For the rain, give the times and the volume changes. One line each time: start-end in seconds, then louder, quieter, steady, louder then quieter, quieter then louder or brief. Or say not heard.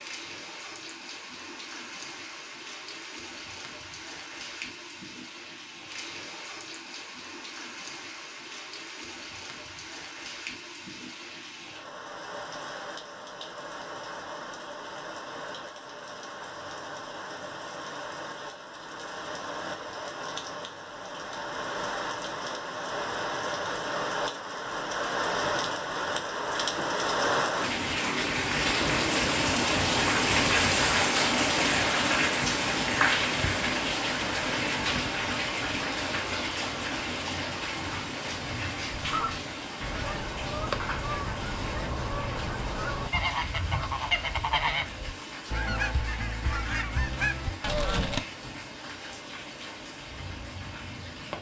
0.0-51.3 louder then quieter.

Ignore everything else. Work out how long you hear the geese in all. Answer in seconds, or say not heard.
9 s.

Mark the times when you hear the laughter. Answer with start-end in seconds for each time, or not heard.
not heard.